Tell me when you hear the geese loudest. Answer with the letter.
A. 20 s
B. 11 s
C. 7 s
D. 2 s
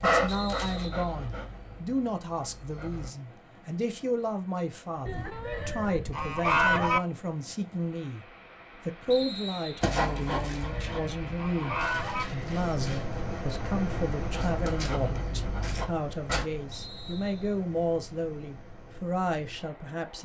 C.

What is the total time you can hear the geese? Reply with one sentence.
The geese can be heard for 4 seconds in total.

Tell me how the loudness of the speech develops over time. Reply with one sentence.
The volume of the speech stays about the same.